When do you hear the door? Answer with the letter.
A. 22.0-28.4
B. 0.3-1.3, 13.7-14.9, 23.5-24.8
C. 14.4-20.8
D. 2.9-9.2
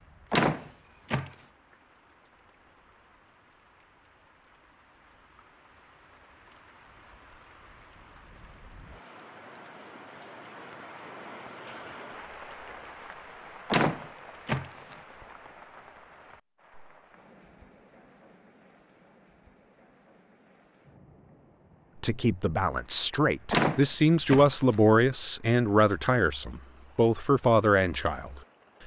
B.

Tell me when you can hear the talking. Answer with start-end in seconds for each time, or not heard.
22.0-28.4.